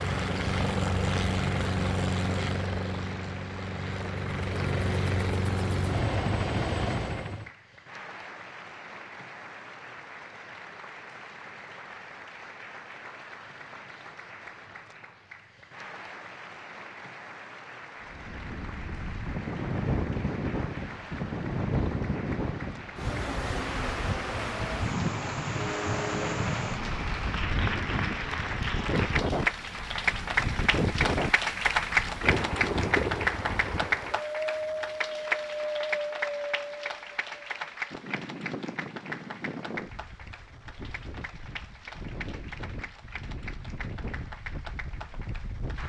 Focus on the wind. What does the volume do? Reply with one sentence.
The volume of the wind goes down.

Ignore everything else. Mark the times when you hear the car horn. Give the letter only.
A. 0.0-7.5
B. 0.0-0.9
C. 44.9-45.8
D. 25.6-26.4
D.